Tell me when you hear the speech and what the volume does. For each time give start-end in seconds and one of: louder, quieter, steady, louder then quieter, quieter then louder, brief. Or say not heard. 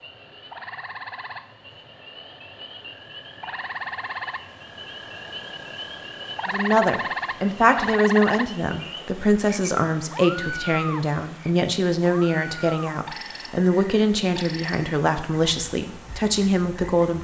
6.5-17.1 steady.